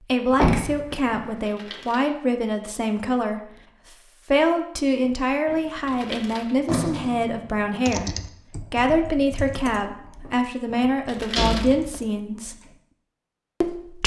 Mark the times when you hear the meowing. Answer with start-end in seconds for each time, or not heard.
not heard.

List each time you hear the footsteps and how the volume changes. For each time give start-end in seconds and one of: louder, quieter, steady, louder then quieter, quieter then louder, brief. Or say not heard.
not heard.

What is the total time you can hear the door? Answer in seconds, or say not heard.
4 s.